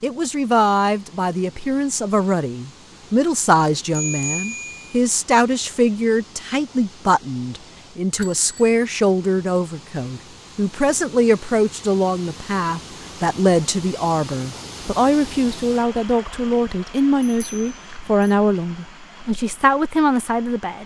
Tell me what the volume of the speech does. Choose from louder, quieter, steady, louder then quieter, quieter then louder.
steady.